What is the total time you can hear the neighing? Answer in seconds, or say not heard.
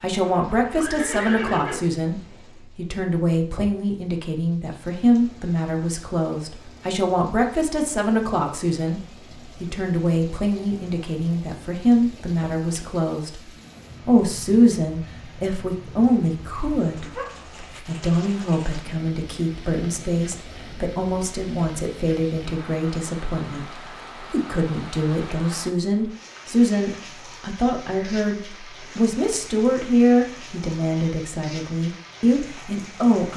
2 s.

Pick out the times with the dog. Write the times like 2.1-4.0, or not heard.
17.0-17.9.